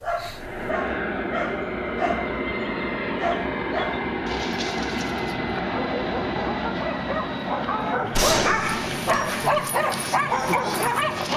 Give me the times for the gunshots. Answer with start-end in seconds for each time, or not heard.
8.1-9.4.